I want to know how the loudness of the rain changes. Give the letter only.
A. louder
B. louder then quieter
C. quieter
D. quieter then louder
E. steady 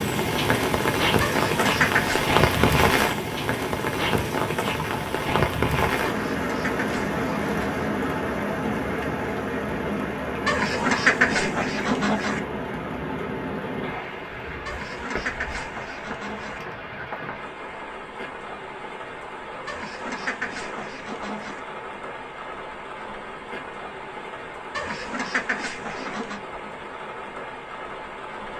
C.